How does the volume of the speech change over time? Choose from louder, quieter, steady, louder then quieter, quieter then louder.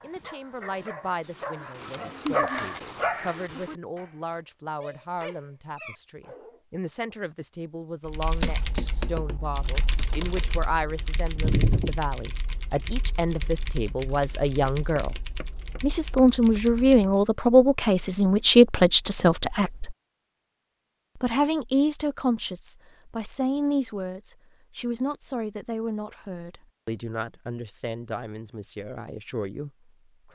louder then quieter.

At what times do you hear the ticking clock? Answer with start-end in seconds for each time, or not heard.
not heard.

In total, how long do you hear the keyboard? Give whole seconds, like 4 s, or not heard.
9 s.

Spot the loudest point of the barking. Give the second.
2 s.